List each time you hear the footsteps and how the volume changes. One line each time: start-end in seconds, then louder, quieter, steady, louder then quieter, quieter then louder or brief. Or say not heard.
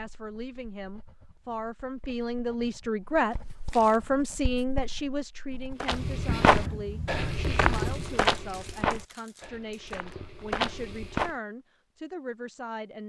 5.8-11.3 quieter then louder.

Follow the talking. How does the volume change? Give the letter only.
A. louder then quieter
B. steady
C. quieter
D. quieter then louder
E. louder
A.